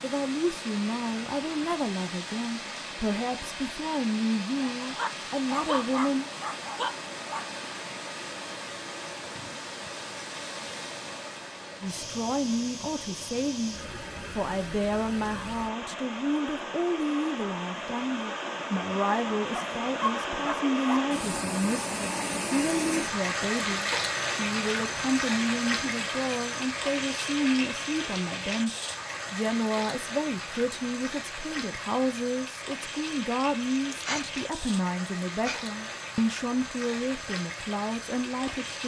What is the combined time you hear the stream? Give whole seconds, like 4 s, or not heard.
39 s.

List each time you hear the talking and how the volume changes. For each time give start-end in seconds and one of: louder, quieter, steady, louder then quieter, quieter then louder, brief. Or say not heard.
0.0-6.2 steady
11.8-38.8 steady.